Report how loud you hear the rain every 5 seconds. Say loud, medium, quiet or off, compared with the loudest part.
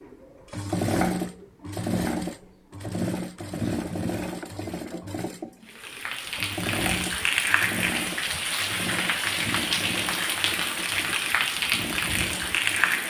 off, loud, loud.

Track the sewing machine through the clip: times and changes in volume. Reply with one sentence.
The sewing machine can be heard from 0.0 to 13.0 s, getting quieter.